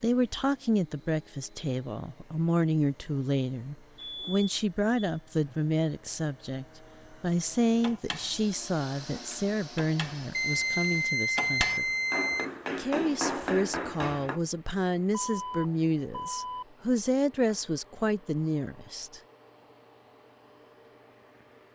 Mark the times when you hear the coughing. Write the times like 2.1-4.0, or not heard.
not heard.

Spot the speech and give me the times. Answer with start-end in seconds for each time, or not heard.
0.0-11.9, 12.8-19.2.